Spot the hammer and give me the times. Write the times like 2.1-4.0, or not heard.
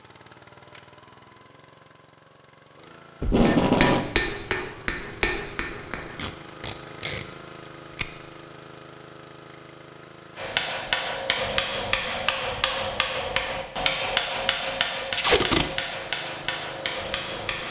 3.5-6.2, 10.3-17.6.